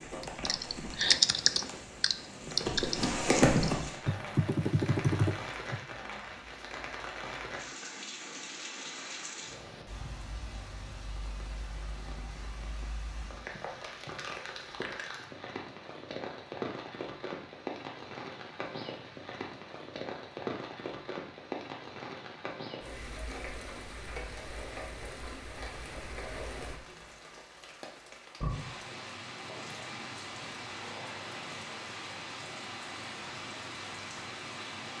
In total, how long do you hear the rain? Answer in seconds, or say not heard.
35 s.